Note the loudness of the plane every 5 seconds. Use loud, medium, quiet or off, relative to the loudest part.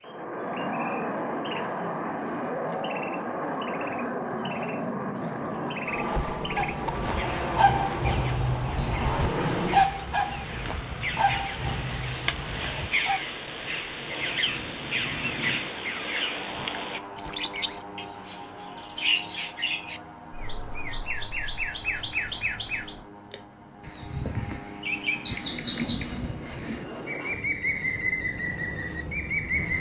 loud, loud, medium, medium, quiet, medium.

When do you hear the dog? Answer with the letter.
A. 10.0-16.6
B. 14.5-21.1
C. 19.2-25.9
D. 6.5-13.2
D.